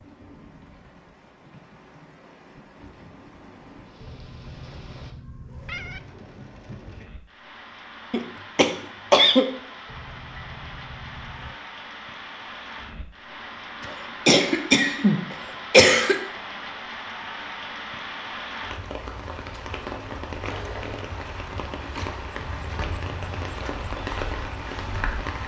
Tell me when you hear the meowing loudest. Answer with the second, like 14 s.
6 s.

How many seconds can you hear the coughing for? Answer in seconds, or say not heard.
4 s.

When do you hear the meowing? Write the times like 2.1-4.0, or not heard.
4.0-6.0, 9.8-11.6, 22.4-23.4.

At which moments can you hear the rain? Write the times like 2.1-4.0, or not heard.
0.0-25.4.